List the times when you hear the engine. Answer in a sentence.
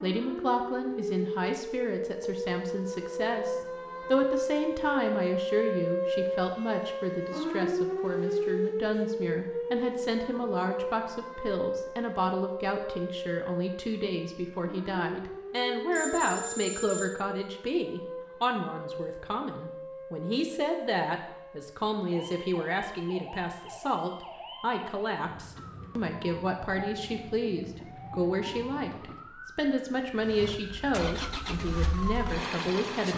The engine can be heard from 30.2 to 33.1 s.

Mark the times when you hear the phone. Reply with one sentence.
The phone can be heard from 15.9 to 17.2 s.